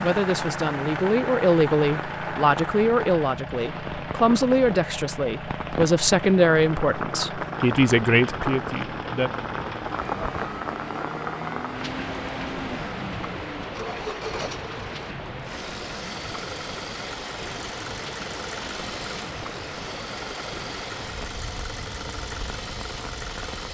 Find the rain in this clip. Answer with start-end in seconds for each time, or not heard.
0.0-23.6.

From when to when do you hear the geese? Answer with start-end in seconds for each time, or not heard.
not heard.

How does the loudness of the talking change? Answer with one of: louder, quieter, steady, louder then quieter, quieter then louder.
steady.